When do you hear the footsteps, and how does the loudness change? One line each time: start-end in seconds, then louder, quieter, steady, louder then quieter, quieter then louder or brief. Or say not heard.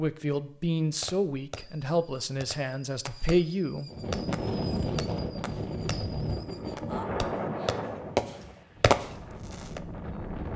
not heard.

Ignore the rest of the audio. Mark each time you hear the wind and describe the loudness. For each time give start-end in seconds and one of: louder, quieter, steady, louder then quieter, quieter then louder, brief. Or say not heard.
3.9-10.5 quieter.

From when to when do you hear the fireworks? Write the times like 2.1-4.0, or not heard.
1.0-9.8.